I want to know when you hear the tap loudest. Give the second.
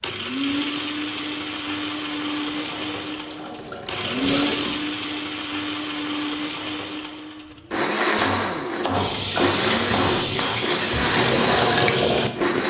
12 s.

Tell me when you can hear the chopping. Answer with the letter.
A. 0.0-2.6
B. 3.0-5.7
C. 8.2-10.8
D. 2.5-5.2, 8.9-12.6
C.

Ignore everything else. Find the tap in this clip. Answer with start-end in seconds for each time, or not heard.
2.5-5.2, 8.9-12.6.